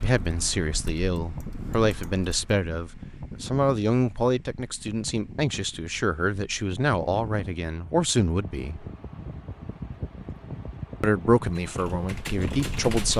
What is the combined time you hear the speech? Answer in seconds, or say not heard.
11 s.